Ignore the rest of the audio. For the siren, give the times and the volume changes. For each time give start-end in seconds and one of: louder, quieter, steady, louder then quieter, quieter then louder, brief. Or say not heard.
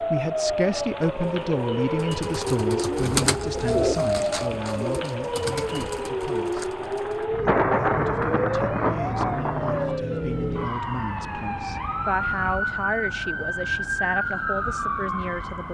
0.0-15.7 steady.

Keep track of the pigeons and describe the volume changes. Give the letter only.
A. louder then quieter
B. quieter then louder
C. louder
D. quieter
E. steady
A.